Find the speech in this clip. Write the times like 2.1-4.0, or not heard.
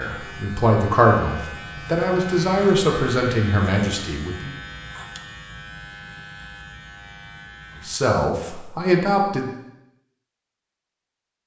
0.0-4.5, 7.8-9.5.